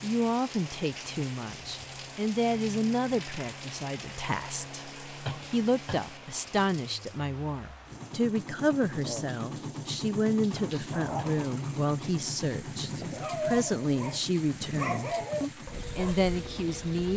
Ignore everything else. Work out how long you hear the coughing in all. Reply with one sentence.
The coughing can be heard for 2 seconds in total.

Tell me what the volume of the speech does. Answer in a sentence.
The loudness of the speech stays about the same.